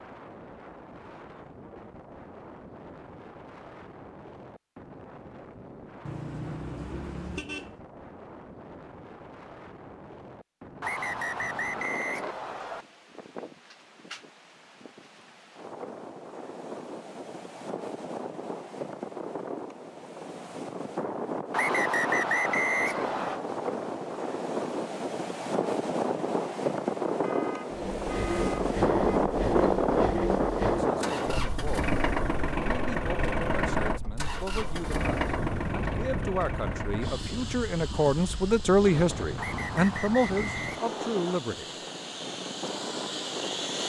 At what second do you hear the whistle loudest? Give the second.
22 s.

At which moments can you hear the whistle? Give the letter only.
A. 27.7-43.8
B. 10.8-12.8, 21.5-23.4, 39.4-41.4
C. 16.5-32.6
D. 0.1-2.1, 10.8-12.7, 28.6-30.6
B.